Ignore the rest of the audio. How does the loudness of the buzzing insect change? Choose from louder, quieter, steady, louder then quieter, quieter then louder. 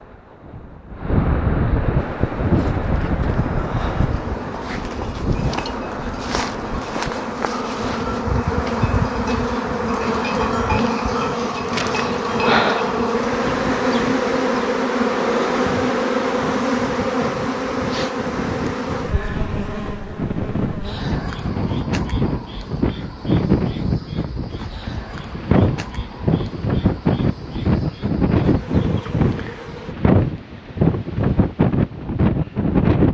louder then quieter.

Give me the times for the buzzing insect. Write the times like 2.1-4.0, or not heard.
1.9-29.9.